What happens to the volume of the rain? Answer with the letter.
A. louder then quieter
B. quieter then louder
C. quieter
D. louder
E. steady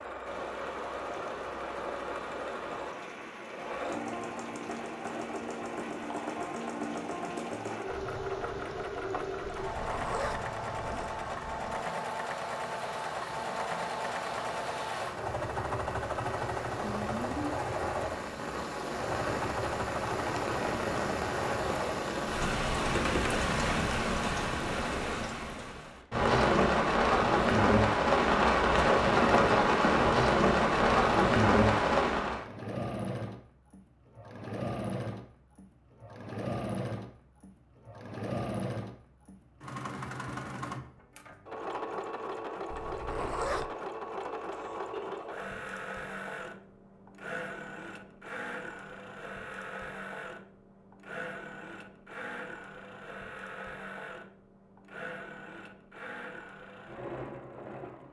D.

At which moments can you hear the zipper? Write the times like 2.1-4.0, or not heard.
9.6-11.2, 42.7-43.6.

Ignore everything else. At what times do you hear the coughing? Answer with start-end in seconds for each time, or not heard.
44.5-45.3.